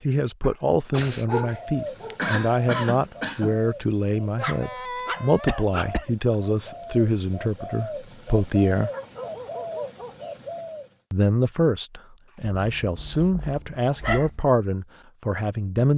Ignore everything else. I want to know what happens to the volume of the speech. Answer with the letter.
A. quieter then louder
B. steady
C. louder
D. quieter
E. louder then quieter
B.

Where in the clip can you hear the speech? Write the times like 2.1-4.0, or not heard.
0.0-8.9, 11.1-15.9.